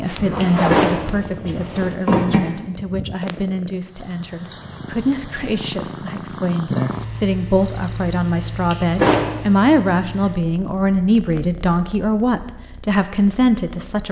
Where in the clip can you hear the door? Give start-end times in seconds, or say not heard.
0.4-2.4, 8.7-9.3.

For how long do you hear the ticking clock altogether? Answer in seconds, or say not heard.
not heard.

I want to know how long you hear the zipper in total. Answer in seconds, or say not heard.
2 s.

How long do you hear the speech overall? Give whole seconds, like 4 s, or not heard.
14 s.